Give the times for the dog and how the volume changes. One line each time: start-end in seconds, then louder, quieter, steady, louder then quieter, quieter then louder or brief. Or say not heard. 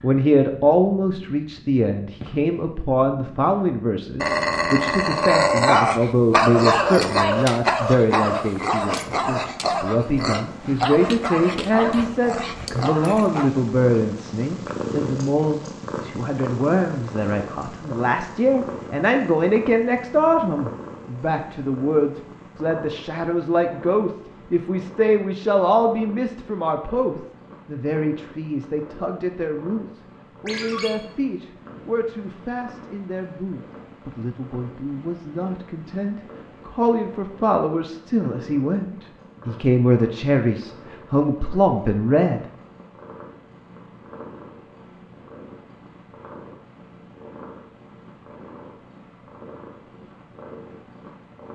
4.2-13.5 quieter.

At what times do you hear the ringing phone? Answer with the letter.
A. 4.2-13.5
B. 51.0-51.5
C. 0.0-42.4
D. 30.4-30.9
D.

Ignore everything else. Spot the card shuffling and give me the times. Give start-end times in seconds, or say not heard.
not heard.